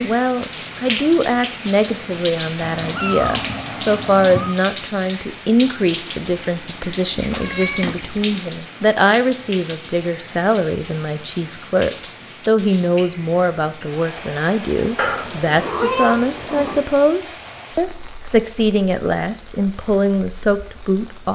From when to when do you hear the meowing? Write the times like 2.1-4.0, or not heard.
2.6-4.5, 7.2-8.2, 14.9-16.9.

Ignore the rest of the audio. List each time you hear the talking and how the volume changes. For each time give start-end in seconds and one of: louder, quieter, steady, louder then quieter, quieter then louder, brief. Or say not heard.
0.0-21.3 steady.